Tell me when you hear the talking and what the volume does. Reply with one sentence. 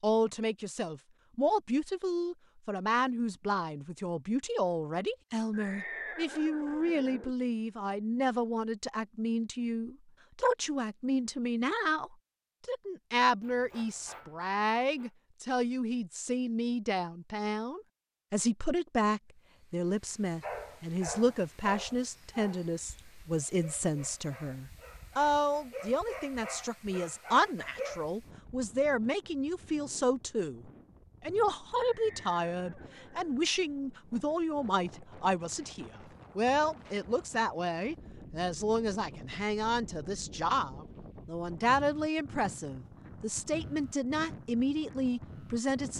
You can hear the talking from 0.0 to 45.9 s, at a steady volume.